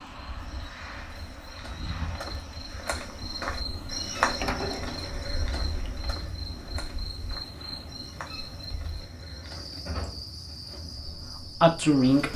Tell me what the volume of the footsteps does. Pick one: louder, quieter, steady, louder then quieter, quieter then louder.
louder then quieter.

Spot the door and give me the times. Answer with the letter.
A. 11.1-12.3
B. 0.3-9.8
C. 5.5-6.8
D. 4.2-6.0
D.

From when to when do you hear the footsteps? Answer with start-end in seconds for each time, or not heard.
0.3-9.8.